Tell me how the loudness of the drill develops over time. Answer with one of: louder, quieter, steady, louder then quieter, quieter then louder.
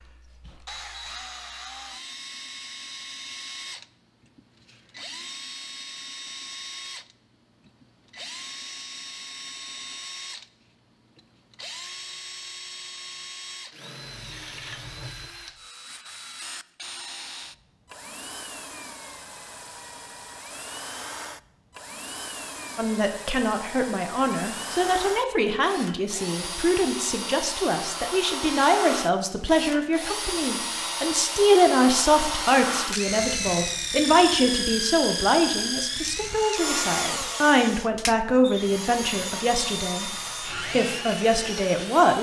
louder.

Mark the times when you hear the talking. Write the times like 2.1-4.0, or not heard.
22.8-42.1.